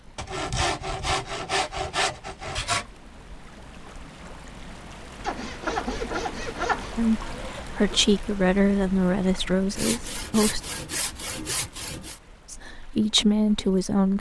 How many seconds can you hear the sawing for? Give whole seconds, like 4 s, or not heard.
7 s.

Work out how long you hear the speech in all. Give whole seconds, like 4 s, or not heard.
5 s.